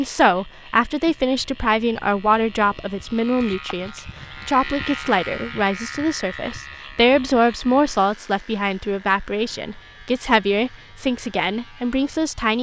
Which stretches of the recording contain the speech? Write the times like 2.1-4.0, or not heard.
0.0-12.5.